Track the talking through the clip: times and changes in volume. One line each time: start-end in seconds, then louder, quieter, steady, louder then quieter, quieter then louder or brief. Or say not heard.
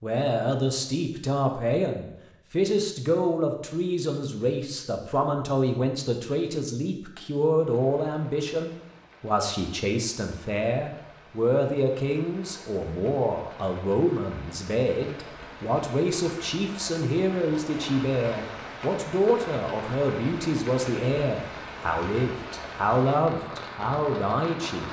0.0-24.8 steady.